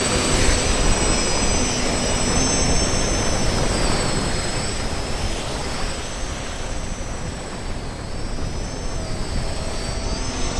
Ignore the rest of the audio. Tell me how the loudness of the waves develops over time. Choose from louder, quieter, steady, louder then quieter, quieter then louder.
quieter.